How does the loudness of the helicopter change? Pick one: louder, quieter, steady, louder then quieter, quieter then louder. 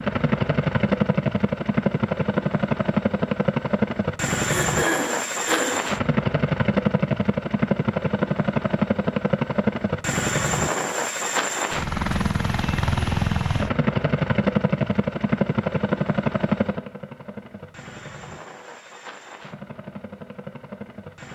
quieter.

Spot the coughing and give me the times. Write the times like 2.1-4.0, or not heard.
4.4-5.8.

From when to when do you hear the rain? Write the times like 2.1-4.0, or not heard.
not heard.